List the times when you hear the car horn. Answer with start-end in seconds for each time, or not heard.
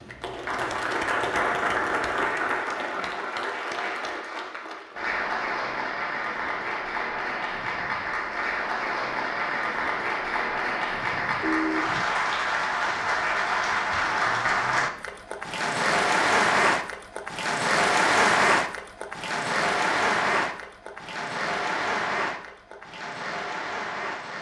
11.1-12.1.